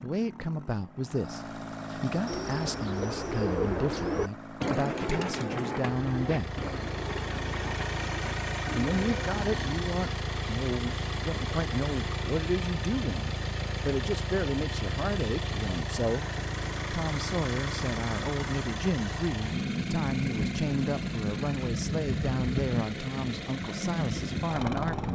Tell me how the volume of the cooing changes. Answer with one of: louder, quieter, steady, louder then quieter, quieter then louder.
quieter.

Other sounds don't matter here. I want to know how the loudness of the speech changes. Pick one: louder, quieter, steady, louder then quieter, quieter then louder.
steady.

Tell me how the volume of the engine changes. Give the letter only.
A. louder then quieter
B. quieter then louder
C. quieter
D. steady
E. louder
E.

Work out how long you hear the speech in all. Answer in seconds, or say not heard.
22 s.